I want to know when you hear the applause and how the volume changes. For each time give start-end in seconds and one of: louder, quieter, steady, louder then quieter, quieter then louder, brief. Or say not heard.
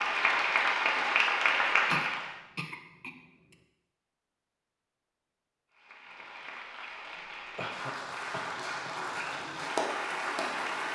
0.0-2.4 brief
5.7-10.9 louder.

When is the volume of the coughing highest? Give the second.
2 s.